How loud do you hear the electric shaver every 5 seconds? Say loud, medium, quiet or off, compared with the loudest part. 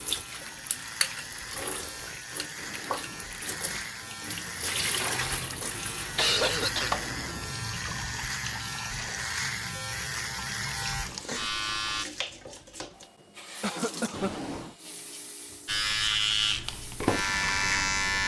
quiet, medium, medium, loud.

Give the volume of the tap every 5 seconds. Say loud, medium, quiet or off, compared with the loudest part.
loud, loud, medium, quiet.